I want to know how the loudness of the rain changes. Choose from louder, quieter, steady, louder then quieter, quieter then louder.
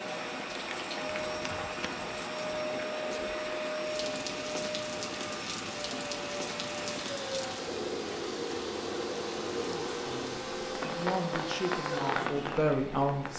steady.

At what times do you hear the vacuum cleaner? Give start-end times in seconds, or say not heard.
0.0-13.3.